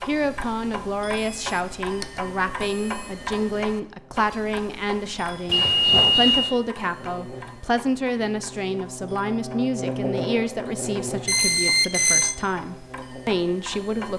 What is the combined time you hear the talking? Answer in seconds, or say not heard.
14 s.